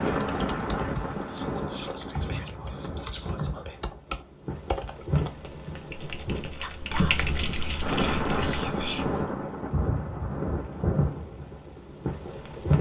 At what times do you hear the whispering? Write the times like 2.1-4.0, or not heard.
1.2-3.9, 6.5-9.1.